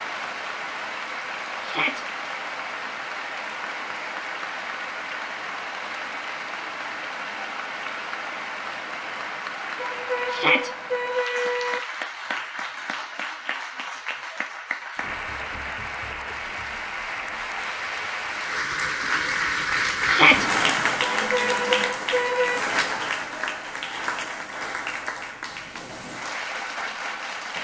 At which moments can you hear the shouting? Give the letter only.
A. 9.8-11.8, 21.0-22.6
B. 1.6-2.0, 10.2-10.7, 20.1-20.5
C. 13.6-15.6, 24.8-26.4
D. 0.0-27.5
B.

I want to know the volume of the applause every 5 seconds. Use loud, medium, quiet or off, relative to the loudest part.
medium, medium, medium, loud, loud, medium.